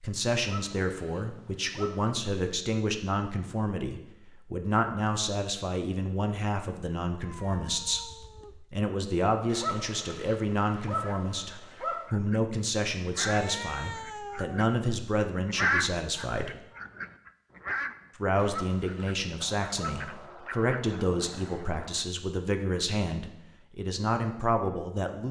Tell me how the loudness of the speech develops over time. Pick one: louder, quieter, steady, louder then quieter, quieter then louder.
steady.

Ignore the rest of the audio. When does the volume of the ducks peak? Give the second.
16 s.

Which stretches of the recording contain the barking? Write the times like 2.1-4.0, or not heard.
0.3-2.1, 9.4-12.2, 18.4-20.3.